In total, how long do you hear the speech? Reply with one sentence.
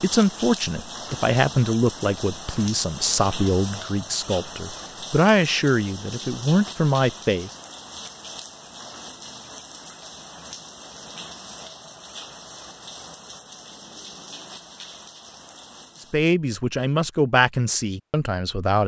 You can hear the speech for 10 seconds altogether.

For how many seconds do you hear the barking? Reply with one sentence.
You can't hear the barking here.